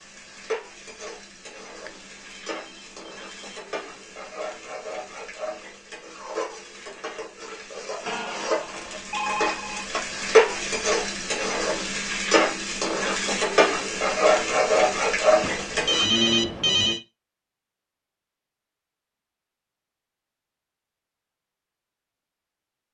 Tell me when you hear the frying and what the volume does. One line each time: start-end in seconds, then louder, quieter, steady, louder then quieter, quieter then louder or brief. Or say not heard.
0.0-16.1 louder.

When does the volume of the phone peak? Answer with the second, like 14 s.
16 s.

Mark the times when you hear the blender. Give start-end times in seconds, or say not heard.
not heard.